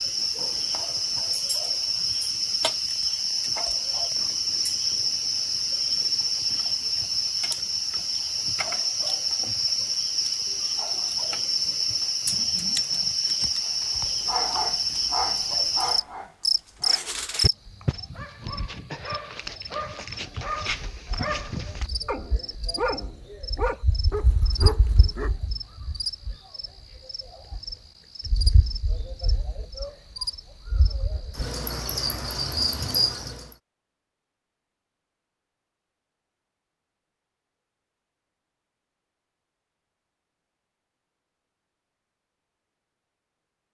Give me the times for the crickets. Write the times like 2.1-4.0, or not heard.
0.0-33.5.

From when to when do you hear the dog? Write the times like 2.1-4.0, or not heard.
13.7-25.4.